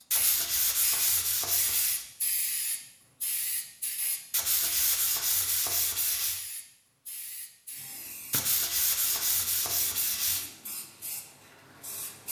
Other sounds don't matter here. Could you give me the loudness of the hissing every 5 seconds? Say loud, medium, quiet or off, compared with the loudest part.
loud, medium, medium.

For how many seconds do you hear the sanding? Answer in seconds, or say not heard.
6 s.